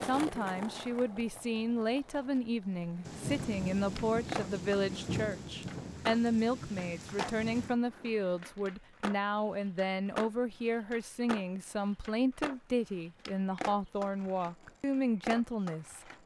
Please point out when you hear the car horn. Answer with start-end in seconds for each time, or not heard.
not heard.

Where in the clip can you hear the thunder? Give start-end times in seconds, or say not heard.
3.0-7.8.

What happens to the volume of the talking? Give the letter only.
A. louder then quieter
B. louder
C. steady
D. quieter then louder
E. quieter
C.